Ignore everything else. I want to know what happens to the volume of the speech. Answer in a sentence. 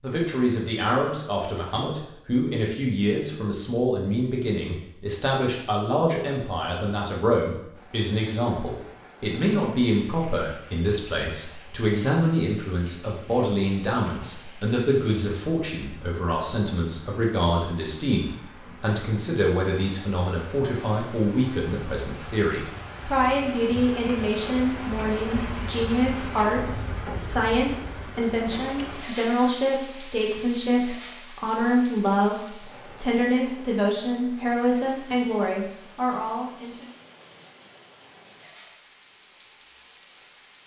The loudness of the speech stays about the same.